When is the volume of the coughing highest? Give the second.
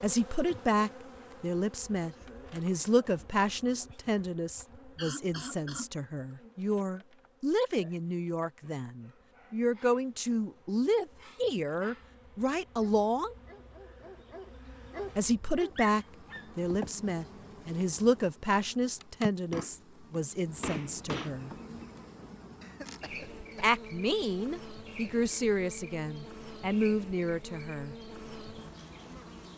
5 s.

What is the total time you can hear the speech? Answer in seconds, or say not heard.
24 s.